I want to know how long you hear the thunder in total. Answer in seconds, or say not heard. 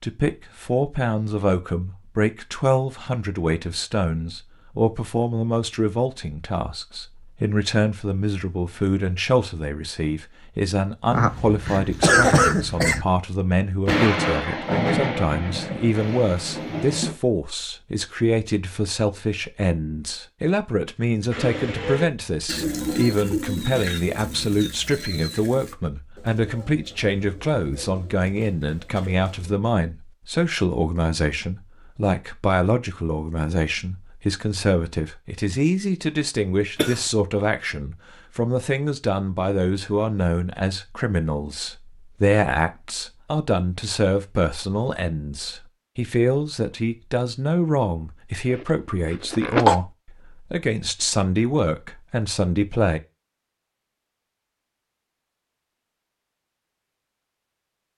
3 s.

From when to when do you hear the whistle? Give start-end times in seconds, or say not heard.
not heard.